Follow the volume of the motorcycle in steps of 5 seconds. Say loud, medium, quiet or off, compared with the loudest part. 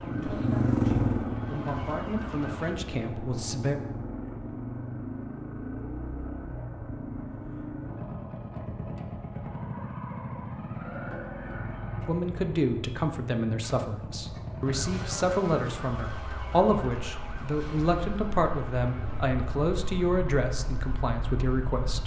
loud, medium, medium, medium, medium.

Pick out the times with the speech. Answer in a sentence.
You can hear the speech from 0.0 to 3.8 s and from 12.1 to 22.0 s.